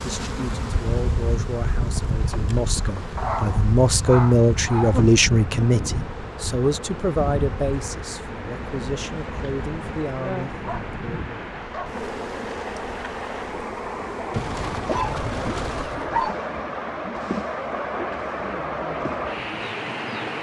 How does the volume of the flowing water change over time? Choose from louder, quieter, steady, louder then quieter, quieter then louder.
louder.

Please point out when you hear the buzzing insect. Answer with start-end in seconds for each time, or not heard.
0.0-20.3.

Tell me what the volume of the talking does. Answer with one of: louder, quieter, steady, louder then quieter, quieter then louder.
louder then quieter.